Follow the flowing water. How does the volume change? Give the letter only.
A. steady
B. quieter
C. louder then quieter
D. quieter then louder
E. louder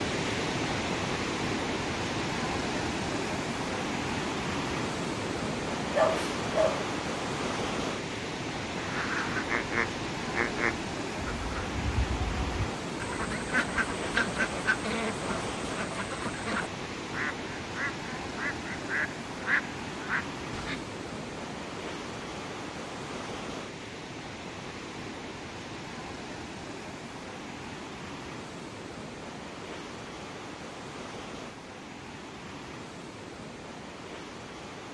B.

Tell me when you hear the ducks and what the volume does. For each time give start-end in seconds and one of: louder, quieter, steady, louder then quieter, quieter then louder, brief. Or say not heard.
8.8-20.9 steady.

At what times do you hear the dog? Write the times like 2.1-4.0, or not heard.
5.9-6.8.